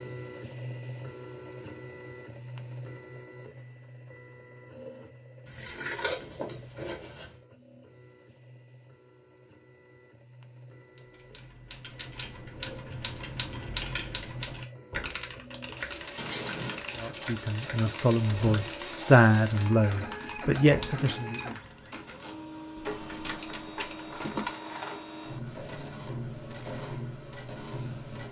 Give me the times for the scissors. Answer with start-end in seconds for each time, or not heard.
5.5-7.3, 16.1-16.8, 22.8-24.5.